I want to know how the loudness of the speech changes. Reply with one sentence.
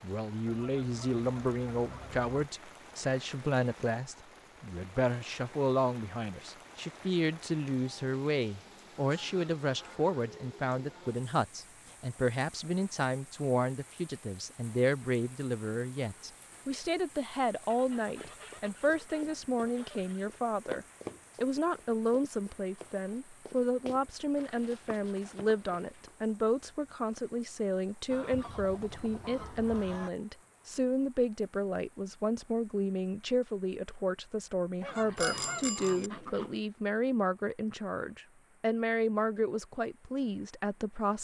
The loudness of the speech stays about the same.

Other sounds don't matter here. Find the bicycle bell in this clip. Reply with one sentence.
You can hear the bicycle bell from 35.1 to 36.1 s.